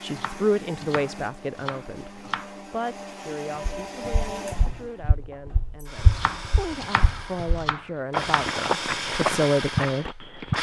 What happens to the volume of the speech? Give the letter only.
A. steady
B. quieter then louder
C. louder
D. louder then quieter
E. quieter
B.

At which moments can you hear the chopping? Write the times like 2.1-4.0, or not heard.
0.1-2.5, 6.1-8.6.